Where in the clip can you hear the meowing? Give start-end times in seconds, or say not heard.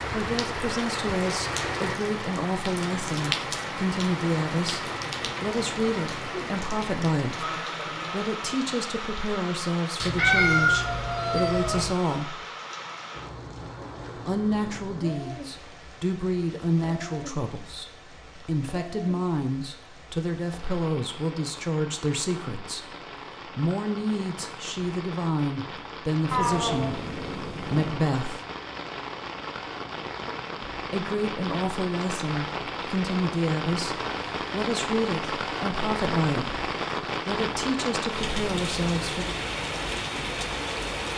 10.0-11.9, 26.3-28.0.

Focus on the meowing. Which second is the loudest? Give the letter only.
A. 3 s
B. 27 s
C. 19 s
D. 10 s
D.